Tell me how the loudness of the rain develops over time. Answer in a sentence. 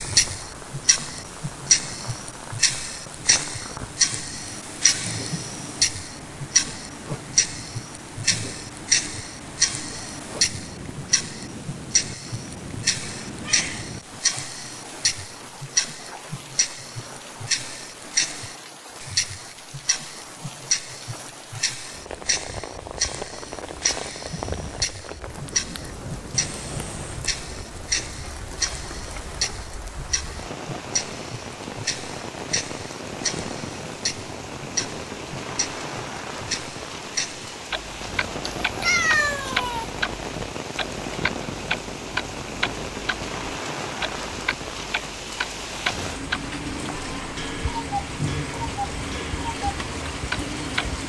The loudness of the rain goes up.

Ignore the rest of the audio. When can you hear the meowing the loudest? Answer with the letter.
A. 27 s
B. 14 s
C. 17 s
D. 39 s
D.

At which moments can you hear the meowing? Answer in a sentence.
The meowing can be heard from 13.2 to 13.8 s, from 26.3 to 27.2 s and from 38.6 to 39.9 s.